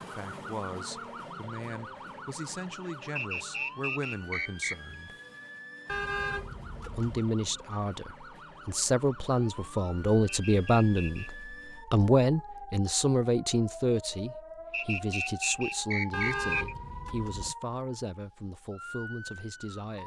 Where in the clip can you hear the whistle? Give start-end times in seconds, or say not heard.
3.1-5.0, 10.2-11.3, 14.7-16.6.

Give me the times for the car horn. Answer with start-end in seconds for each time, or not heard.
5.8-7.2, 16.1-17.6.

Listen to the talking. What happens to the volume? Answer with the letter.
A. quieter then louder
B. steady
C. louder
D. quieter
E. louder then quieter
E.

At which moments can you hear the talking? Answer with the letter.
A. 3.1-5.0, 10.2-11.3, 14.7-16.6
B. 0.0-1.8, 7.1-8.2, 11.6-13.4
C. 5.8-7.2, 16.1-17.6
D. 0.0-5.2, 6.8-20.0
D.